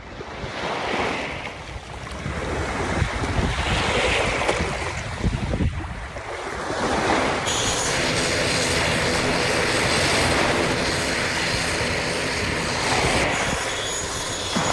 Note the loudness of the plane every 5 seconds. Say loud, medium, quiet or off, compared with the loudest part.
off, loud, loud.